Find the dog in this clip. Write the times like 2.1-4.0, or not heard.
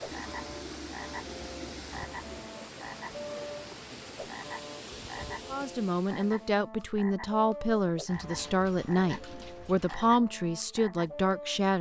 not heard.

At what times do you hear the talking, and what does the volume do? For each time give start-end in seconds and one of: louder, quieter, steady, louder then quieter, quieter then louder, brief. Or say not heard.
5.5-11.7 steady.